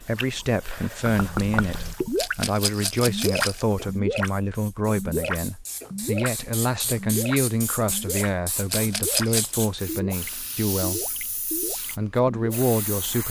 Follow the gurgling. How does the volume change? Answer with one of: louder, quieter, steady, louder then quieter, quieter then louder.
quieter.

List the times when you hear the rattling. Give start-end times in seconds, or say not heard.
2.1-3.6, 8.7-9.6.